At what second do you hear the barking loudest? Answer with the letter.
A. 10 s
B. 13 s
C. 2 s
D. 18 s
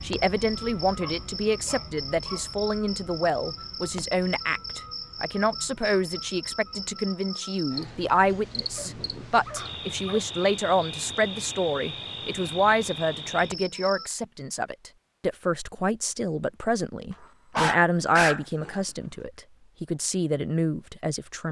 D.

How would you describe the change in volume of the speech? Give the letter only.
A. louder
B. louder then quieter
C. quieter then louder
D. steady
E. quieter
D.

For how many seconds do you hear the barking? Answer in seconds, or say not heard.
4 s.